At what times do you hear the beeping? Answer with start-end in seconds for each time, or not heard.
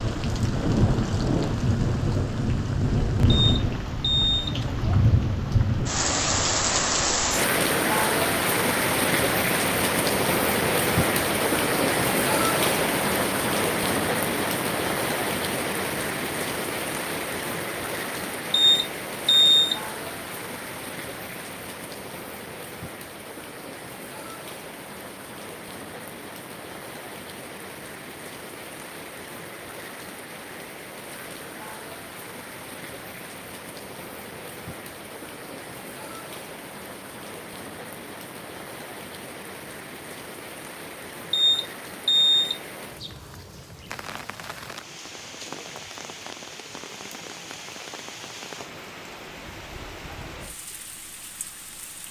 3.2-4.5, 18.5-19.8, 41.3-42.6.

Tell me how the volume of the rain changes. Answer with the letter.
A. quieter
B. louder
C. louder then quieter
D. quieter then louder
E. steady
A.